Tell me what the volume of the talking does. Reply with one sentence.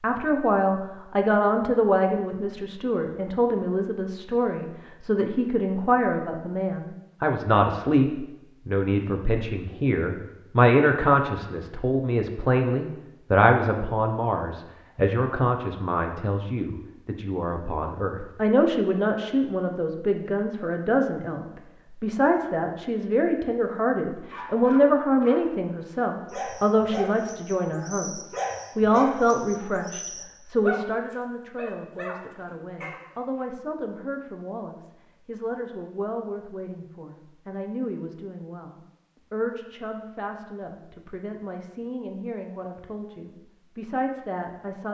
The volume of the talking goes down.